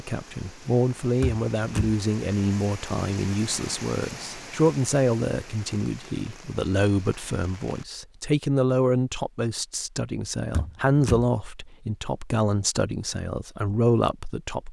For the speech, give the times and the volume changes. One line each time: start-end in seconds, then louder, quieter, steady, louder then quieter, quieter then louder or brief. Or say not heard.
0.0-14.6 steady.